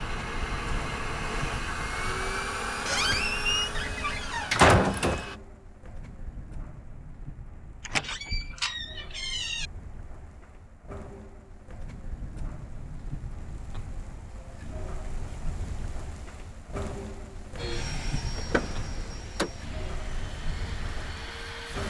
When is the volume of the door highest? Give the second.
5 s.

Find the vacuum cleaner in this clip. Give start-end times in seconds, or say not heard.
0.0-5.4, 17.6-21.8.